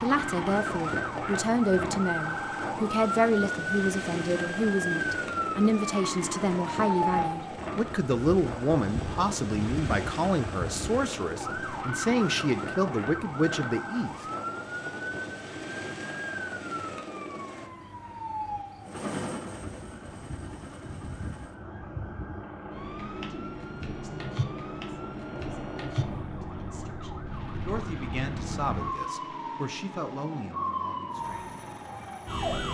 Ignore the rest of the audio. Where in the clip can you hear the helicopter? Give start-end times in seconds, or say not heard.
0.0-32.5.